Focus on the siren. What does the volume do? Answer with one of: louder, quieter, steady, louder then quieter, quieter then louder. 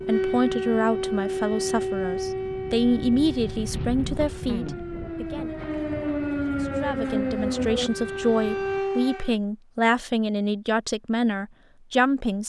quieter then louder.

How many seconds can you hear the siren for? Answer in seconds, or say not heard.
9 s.